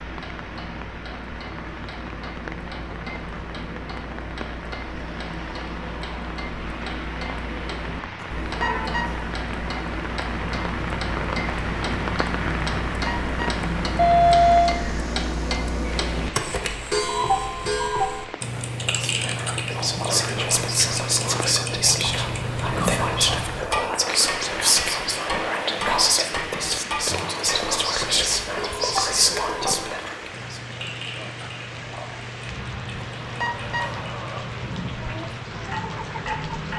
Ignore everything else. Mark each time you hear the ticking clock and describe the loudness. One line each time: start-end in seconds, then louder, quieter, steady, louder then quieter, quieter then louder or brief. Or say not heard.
0.0-36.7 louder then quieter.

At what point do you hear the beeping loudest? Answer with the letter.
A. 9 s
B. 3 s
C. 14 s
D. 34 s
C.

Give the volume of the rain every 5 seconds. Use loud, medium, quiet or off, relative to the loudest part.
medium, medium, loud, medium, medium, medium, medium, loud.